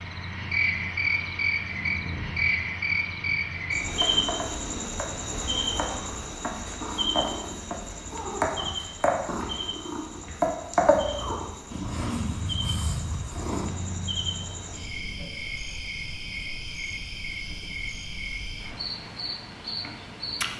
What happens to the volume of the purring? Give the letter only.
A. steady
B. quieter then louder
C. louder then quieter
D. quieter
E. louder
C.